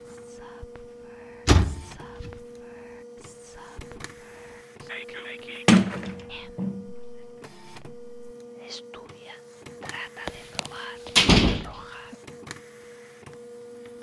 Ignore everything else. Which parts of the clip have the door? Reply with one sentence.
The door can be heard from 1.4 to 2.3 s, from 5.7 to 6.8 s and from 10.2 to 12.2 s.